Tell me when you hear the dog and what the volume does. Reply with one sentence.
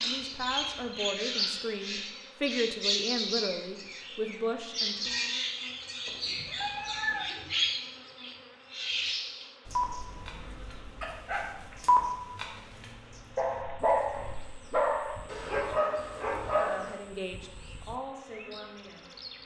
You can hear the dog from 9.7 to 16.9 s, getting louder then quieter.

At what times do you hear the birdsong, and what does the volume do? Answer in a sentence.
You can hear the birdsong from 0.0 to 19.4 s, getting quieter.